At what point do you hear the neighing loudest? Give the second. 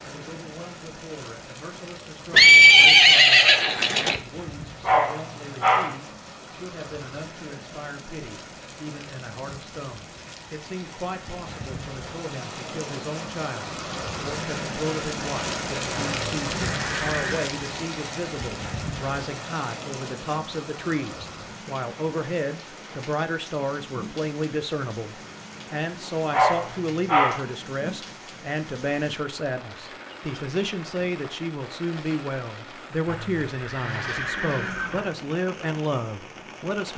3 s.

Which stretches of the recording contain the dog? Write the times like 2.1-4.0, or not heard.
4.8-6.0, 26.3-27.4.